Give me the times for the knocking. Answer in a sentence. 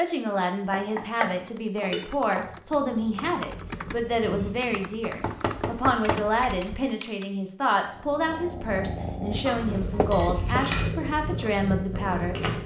You can hear the knocking from 0.7 to 2.5 s, from 5.0 to 6.8 s and from 9.9 to 10.7 s.